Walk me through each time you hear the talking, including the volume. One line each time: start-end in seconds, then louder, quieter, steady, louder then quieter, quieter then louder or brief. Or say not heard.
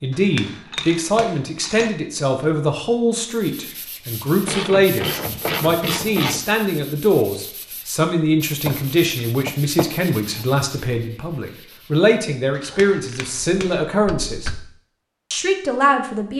0.0-14.5 steady
15.3-16.3 brief.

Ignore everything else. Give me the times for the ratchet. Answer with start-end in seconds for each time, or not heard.
0.3-1.9, 4.5-6.5, 8.7-10.4, 12.6-14.7.